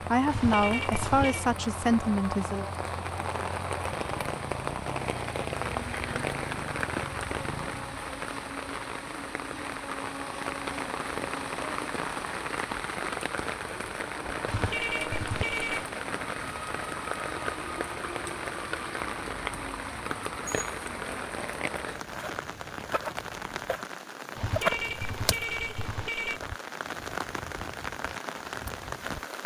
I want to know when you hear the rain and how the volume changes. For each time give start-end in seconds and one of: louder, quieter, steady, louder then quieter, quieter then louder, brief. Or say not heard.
0.0-29.4 steady.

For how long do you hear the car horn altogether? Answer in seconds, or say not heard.
5 s.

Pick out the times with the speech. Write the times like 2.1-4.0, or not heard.
0.1-2.6.